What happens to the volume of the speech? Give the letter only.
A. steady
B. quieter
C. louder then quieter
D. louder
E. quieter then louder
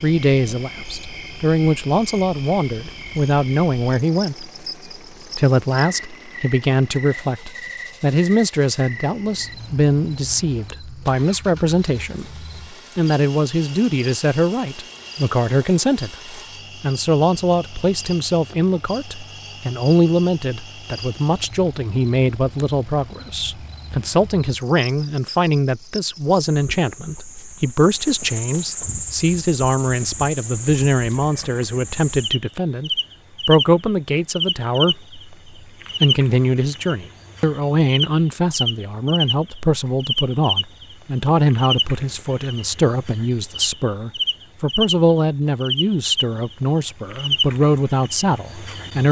A.